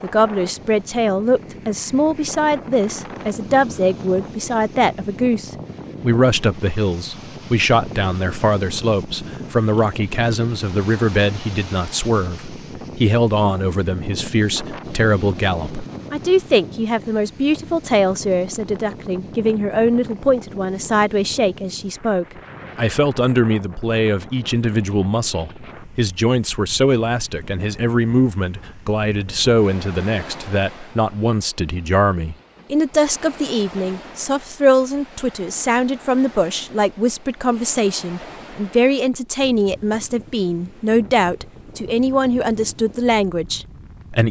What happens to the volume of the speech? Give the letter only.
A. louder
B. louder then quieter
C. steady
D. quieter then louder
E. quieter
C.